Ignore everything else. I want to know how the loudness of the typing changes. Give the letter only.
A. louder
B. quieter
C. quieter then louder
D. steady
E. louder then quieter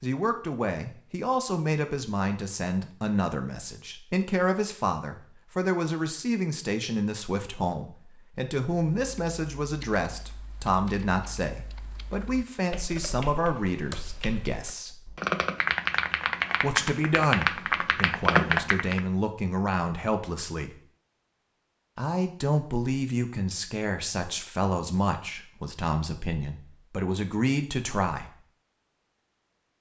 A.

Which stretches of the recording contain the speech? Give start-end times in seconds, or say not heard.
0.0-15.1, 16.6-20.8, 21.9-28.4.